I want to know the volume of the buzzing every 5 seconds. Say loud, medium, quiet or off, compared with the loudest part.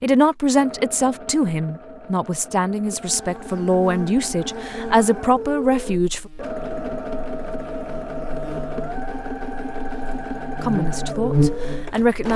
medium, quiet, loud.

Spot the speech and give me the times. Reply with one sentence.
The speech can be heard from 0.0 to 6.3 s and from 10.6 to 12.3 s.